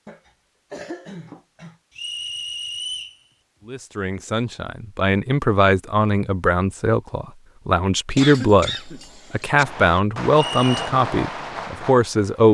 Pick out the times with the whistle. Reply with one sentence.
The whistle can be heard from 1.9 to 3.2 s and from 10.3 to 10.8 s.